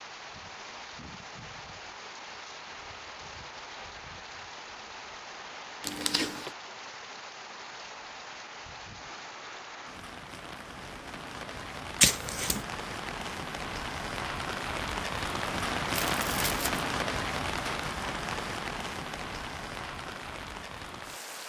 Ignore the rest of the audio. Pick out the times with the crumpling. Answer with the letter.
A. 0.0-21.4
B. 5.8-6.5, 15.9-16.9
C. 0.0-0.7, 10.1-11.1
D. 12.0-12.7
B.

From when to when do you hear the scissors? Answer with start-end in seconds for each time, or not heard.
12.0-12.7.